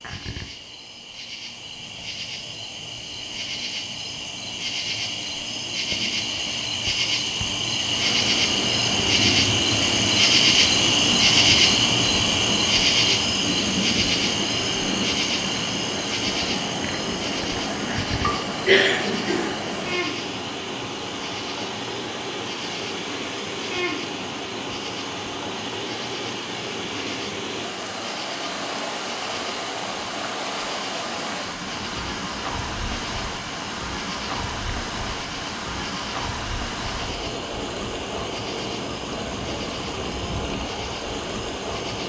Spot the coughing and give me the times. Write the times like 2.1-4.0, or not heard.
18.2-19.5.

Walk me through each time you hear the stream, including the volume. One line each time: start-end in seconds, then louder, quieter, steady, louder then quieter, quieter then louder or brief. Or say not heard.
7.8-42.0 steady.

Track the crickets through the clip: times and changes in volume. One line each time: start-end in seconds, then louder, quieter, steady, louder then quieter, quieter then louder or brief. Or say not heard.
0.0-42.0 louder then quieter.